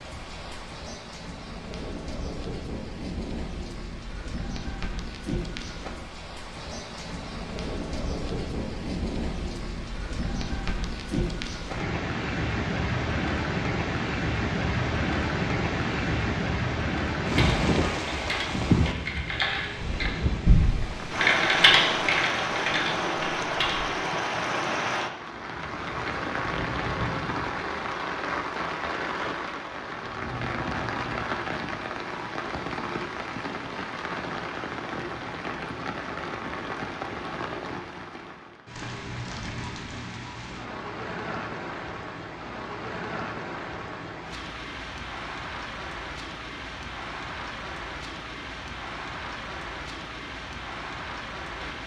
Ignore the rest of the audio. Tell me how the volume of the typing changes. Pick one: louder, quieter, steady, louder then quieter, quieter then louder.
louder then quieter.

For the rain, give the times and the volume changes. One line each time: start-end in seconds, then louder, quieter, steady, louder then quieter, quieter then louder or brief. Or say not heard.
0.0-51.8 louder then quieter.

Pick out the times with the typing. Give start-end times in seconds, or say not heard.
17.4-23.9.